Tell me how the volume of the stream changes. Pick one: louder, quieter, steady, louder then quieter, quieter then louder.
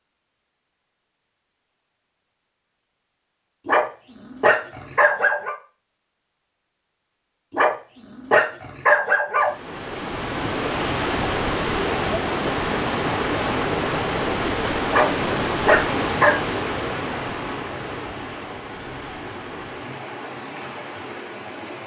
quieter.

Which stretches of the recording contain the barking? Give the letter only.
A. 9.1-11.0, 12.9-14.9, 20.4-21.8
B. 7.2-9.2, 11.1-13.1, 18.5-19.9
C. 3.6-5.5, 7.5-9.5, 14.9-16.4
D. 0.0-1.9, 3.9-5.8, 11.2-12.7
C.